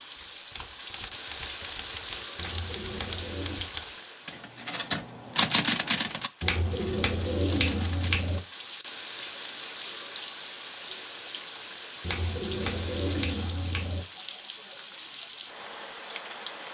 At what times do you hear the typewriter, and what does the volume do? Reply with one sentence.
The typewriter can be heard from 0.1 to 8.4 s, getting louder then quieter.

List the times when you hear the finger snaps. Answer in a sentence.
You can hear the finger snaps from 2.4 to 3.7 s, from 6.4 to 8.4 s and from 12.0 to 14.1 s.